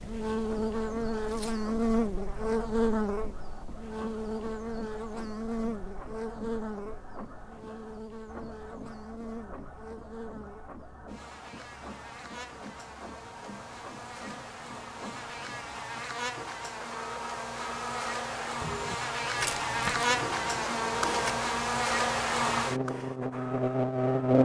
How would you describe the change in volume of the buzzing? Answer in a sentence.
The volume of the buzzing goes down, then up.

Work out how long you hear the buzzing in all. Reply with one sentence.
You can hear the buzzing for 24 seconds altogether.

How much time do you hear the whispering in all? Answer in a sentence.
The whispering can't be heard in this clip.